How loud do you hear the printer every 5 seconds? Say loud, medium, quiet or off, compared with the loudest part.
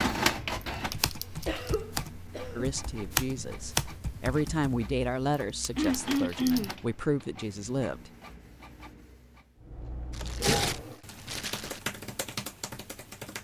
loud, medium, off.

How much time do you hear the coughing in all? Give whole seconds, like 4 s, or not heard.
3 s.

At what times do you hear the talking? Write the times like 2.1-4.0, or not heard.
2.5-8.1.